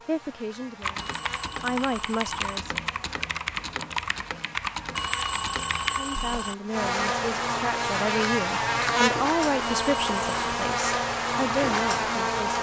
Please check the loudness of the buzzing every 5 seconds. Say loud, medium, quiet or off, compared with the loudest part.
quiet, loud, loud.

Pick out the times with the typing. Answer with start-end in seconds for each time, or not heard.
0.8-6.4.